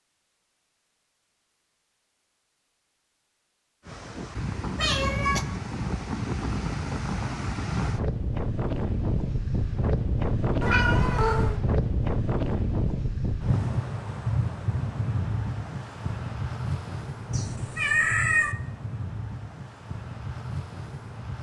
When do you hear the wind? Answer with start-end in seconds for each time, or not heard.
3.9-21.3.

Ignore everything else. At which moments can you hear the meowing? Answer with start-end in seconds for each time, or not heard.
4.8-5.5, 10.6-11.6, 17.3-18.6.